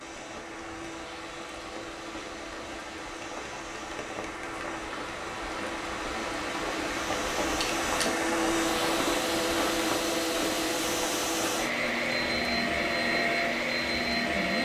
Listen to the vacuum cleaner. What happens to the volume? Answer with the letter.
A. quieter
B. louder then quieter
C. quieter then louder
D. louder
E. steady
D.